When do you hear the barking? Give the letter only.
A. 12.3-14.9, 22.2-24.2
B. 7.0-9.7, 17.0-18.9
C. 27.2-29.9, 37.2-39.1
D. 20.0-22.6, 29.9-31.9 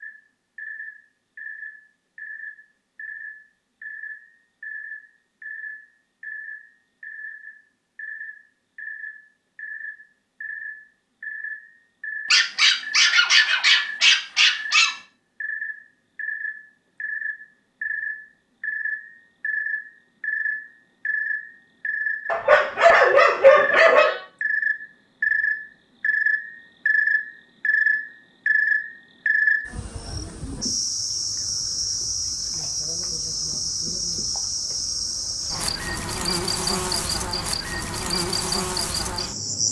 A.